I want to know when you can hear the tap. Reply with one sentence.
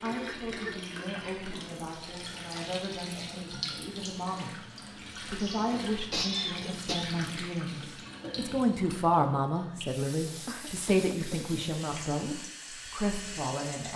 You can hear the tap from 0.0 to 13.9 s.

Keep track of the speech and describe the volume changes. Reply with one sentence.
The loudness of the speech goes up, then down.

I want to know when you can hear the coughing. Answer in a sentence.
The coughing can be heard from 0.1 to 0.8 s, from 5.3 to 7.2 s and from 10.4 to 12.1 s.